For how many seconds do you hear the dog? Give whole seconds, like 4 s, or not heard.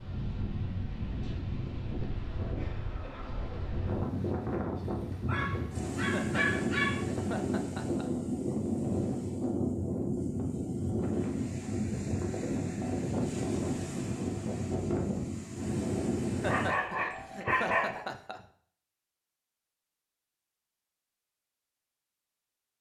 3 s.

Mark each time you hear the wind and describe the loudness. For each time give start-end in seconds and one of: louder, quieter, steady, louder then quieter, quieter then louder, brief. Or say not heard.
0.0-16.7 louder.